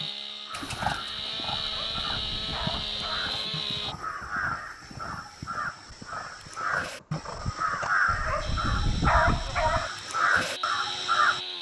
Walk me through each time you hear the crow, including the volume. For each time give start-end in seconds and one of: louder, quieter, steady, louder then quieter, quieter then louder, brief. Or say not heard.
0.0-11.4 louder.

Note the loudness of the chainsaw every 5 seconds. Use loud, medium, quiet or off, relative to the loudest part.
loud, medium, loud.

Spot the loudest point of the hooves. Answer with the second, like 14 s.
1 s.